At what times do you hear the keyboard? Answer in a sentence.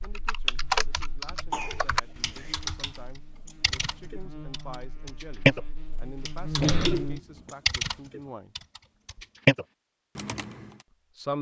You can hear the keyboard from 0.0 to 5.7 s and from 6.2 to 10.8 s.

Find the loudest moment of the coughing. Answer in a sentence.
The loudest moment of the coughing is at 7 seconds.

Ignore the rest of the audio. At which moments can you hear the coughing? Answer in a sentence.
You can hear the coughing from 1.5 to 2.5 s and from 6.6 to 7.5 s.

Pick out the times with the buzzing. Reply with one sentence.
You can hear the buzzing from 0.0 to 7.2 s.